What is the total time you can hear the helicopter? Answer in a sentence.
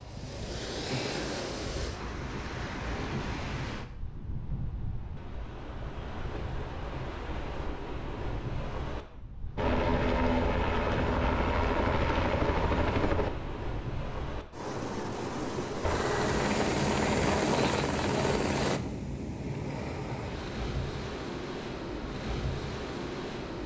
You can hear the helicopter for 7 seconds altogether.